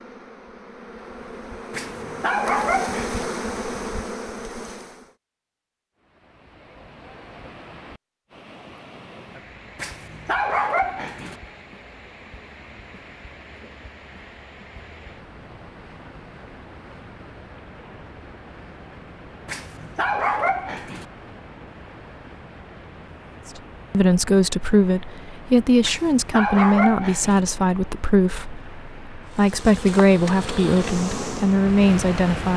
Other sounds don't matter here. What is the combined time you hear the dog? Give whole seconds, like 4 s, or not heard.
6 s.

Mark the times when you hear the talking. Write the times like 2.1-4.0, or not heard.
23.9-32.5.